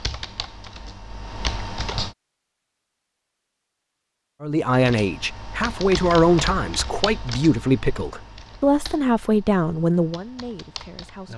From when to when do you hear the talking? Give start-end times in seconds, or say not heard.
4.4-11.3.